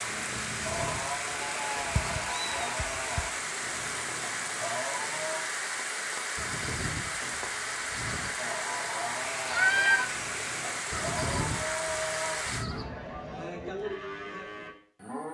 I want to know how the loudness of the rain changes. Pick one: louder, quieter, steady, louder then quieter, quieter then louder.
steady.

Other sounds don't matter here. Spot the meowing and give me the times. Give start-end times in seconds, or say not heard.
1.8-3.2, 9.4-10.1.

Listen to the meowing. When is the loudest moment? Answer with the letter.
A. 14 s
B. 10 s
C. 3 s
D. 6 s
B.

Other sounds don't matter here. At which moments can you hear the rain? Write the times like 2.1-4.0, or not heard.
0.0-12.7.